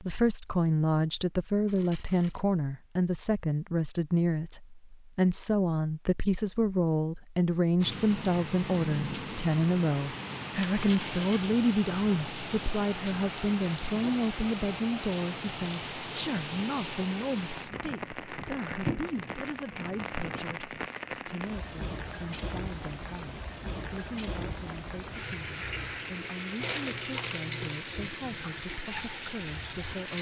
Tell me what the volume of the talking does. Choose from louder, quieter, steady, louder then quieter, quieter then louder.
quieter.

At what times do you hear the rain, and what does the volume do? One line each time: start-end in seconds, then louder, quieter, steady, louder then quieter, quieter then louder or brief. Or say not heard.
7.8-30.1 steady.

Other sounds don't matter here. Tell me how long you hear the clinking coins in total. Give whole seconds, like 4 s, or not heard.
3 s.